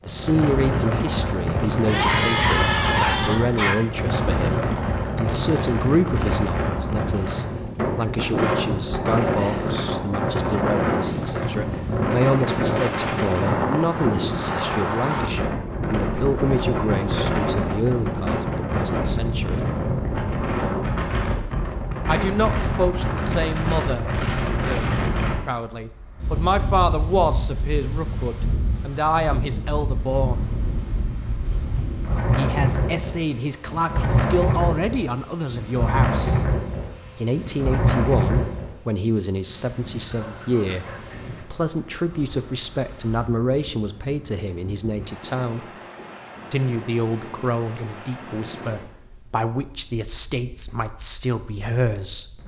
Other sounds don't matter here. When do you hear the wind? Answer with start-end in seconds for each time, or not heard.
0.0-52.4.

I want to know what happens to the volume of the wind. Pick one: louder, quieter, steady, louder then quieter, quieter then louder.
quieter.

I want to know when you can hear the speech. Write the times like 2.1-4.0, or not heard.
0.1-19.7, 22.1-30.4, 32.4-36.4, 37.1-45.6, 46.5-52.4.